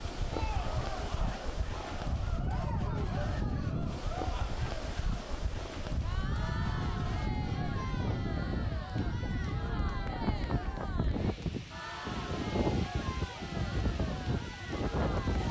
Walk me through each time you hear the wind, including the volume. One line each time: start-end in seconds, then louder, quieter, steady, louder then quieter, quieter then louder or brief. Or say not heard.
0.0-15.4 steady.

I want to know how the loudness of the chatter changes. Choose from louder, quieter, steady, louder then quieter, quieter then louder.
steady.